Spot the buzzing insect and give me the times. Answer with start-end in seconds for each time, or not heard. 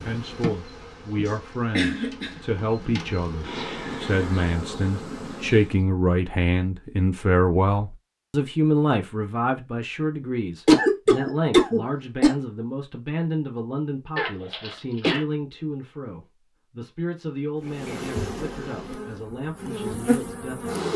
0.0-5.8, 17.6-20.9.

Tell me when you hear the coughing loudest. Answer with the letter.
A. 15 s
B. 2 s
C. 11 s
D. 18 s
C.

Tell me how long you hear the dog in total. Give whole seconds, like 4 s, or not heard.
not heard.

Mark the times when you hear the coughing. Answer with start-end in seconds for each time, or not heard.
1.2-3.0, 10.7-12.3, 14.2-15.2.